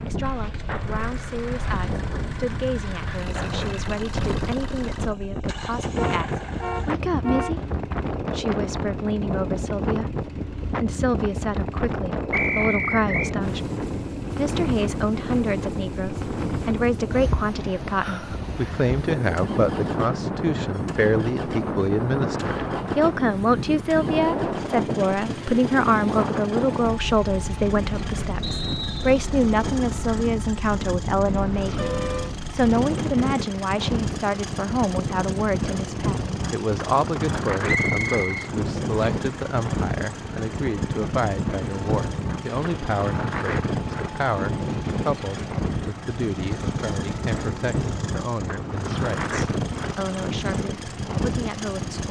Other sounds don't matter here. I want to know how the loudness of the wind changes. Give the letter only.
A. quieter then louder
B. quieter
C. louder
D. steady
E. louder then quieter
D.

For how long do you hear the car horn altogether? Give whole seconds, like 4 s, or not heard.
3 s.